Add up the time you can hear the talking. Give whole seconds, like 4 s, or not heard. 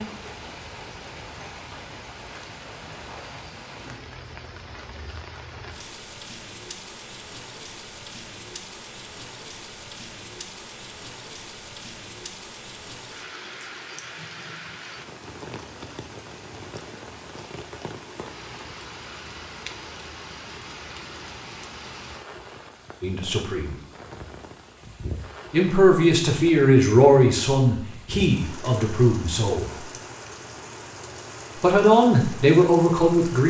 7 s.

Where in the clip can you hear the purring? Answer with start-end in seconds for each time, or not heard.
not heard.